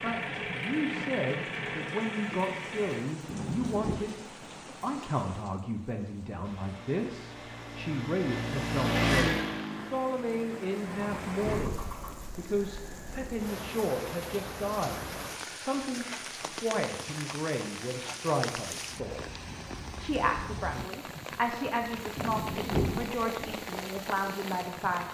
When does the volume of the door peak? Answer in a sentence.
The loudest moment of the door is at 23 seconds.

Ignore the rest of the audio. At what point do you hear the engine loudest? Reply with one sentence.
The loudest moment of the engine is at 9 seconds.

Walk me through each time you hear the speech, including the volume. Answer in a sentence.
The speech can be heard from 0.0 to 4.2 s, at a steady volume; and from 4.8 to 25.0 s, at a steady volume.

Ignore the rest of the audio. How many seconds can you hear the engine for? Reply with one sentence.
You can hear the engine for 9 seconds altogether.